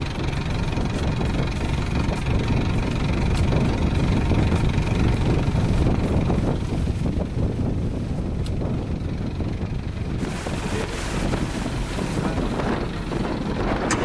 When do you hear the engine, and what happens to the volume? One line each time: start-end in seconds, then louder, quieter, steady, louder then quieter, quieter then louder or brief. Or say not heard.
0.0-13.9 quieter then louder.